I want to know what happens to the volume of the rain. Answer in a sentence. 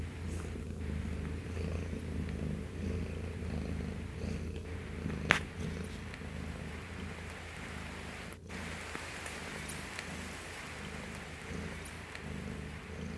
The loudness of the rain goes up.